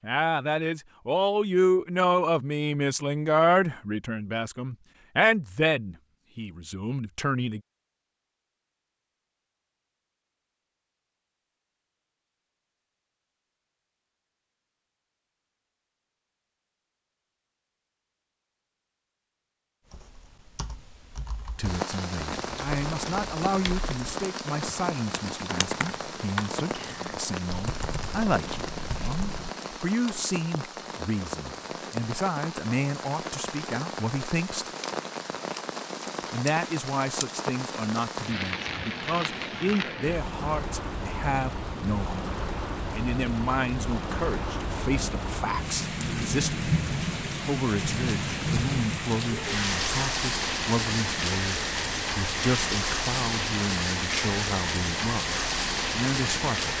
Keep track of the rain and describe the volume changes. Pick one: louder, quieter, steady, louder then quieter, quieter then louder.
louder.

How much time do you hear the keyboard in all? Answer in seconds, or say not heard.
10 s.